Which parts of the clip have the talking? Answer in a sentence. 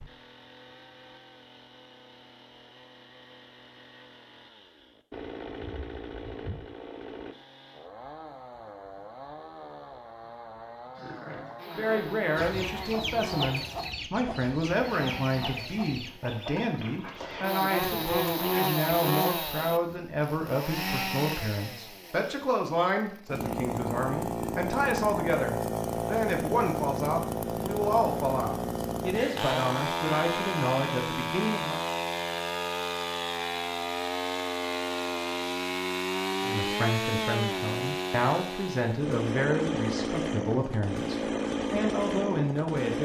The talking can be heard from 11.7 to 31.8 s and from 36.4 to 42.9 s.